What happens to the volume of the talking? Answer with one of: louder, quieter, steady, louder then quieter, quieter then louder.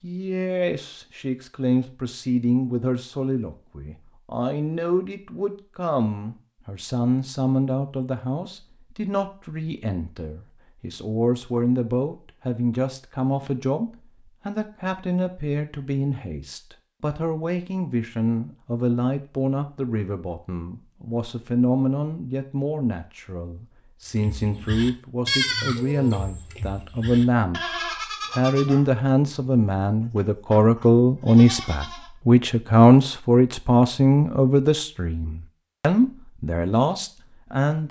louder.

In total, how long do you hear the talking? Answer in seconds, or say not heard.
38 s.